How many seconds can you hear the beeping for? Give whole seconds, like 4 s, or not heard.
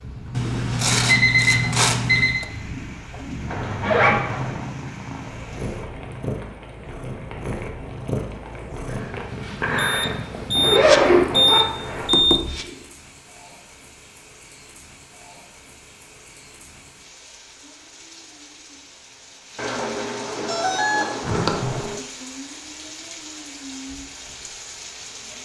7 s.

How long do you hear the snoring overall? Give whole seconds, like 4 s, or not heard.
not heard.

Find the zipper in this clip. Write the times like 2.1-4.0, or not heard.
3.5-4.5, 10.6-12.1, 21.2-21.8.